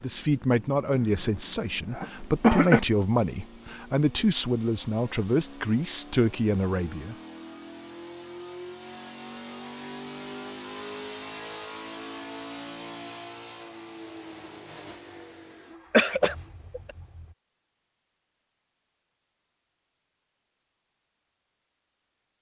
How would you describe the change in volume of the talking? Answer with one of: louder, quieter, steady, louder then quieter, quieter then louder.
steady.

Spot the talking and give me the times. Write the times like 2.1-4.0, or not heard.
0.0-7.2.